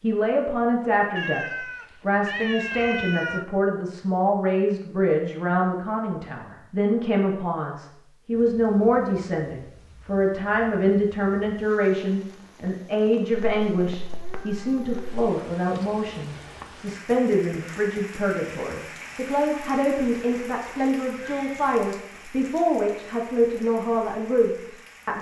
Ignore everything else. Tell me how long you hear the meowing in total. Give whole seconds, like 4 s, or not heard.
5 s.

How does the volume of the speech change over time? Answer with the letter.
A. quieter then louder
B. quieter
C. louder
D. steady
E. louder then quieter
D.